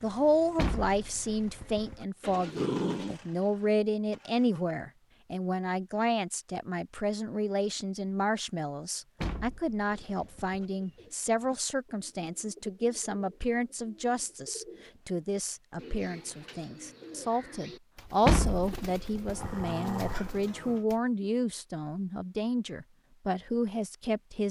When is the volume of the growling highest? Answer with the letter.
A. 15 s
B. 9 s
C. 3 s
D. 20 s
C.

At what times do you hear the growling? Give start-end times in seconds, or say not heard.
2.2-3.1, 19.2-20.9.